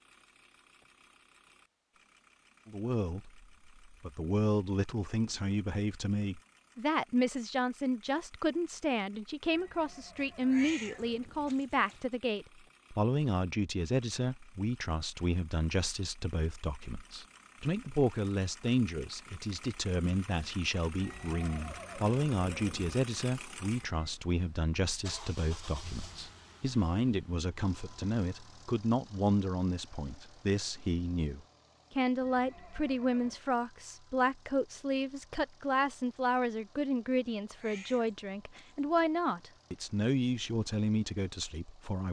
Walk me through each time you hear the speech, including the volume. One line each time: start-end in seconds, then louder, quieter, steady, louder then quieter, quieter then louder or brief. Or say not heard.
2.6-42.0 steady.